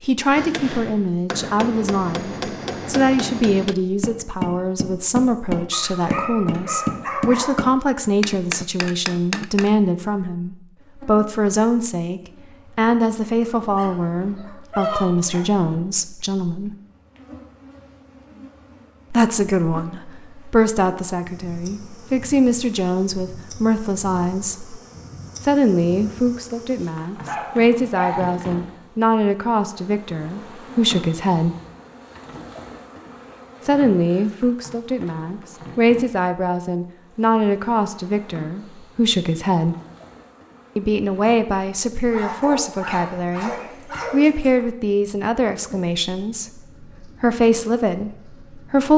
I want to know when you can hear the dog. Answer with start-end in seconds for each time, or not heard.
5.7-7.7, 13.4-15.4, 27.2-28.3, 42.1-44.6.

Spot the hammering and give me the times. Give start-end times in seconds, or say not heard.
0.3-9.7.